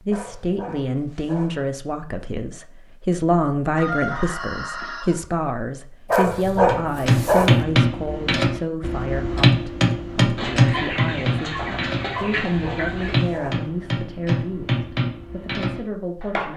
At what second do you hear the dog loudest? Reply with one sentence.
The loudest moment of the dog is at 7 seconds.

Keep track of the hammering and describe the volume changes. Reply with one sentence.
The loudness of the hammering goes down.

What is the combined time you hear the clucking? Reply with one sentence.
The clucking can be heard for 4 seconds in total.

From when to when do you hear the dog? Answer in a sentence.
The dog can be heard from 0.1 to 1.6 s, from 6.1 to 7.7 s and from 12.2 to 13.7 s.